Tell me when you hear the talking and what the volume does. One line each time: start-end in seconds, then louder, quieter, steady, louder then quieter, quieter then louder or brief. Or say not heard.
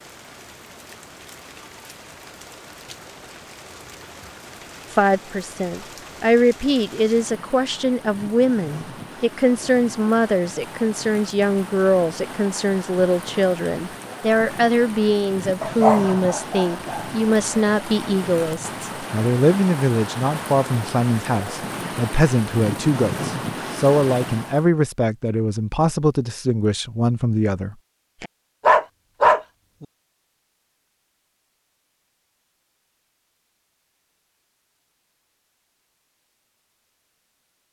4.9-28.3 steady.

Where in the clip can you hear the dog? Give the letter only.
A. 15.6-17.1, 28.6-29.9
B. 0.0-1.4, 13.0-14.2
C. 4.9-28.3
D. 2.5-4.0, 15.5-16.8
A.